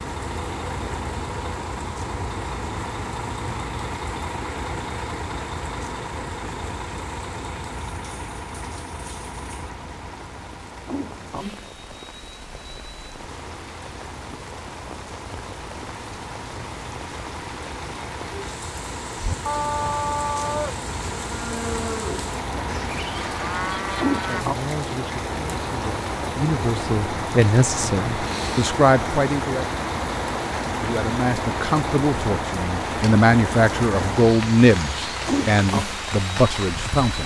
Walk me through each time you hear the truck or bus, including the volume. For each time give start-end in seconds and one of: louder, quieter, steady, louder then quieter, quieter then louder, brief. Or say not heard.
0.0-37.2 quieter then louder.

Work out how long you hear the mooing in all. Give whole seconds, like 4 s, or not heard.
5 s.